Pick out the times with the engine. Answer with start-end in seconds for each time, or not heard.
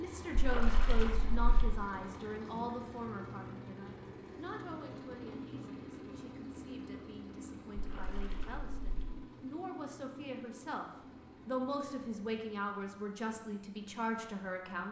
0.0-14.8.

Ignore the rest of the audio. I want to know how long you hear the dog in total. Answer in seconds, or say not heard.
not heard.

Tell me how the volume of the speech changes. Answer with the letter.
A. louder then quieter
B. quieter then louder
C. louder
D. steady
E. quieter
B.